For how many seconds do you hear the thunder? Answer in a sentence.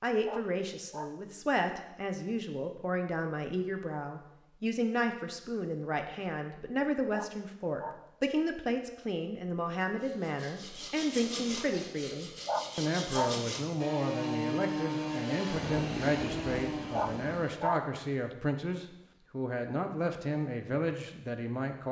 The thunder can be heard for 2 seconds in total.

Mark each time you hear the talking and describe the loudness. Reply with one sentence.
You can hear the talking from 0.0 to 21.8 s, at a steady volume.